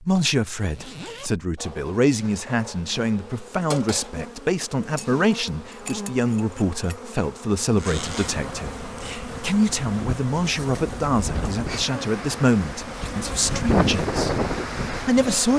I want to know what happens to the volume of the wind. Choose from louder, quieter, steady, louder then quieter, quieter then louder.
louder.